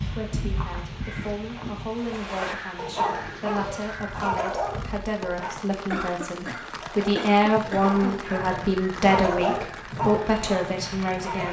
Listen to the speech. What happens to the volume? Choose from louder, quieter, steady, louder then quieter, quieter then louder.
louder.